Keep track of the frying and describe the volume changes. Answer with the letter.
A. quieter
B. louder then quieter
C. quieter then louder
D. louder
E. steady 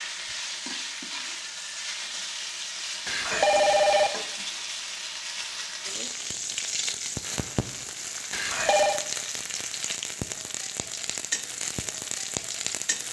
E.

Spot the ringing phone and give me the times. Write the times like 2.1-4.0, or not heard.
3.0-4.1, 8.3-9.0.